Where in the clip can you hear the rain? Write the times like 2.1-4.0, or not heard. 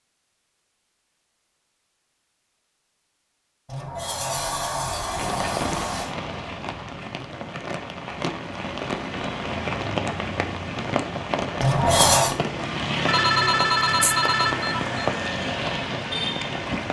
5.0-16.8.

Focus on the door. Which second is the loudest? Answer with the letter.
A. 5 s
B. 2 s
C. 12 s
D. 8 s
C.